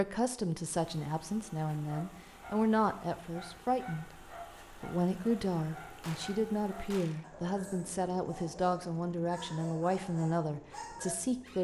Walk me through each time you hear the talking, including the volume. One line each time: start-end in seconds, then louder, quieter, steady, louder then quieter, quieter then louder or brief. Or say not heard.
0.0-11.5 steady.